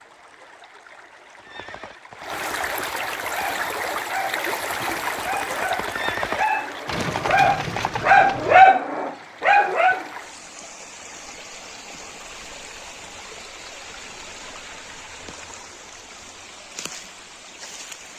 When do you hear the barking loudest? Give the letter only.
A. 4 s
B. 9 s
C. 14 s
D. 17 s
B.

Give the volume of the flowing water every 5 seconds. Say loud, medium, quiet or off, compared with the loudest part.
loud, loud, medium, medium.